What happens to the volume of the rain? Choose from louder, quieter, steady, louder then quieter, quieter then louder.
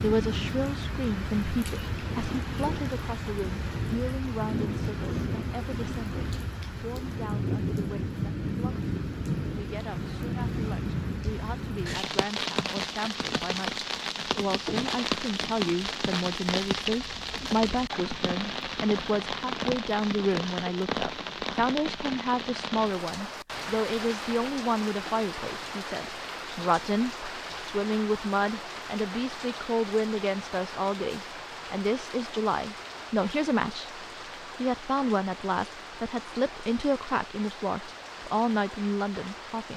quieter.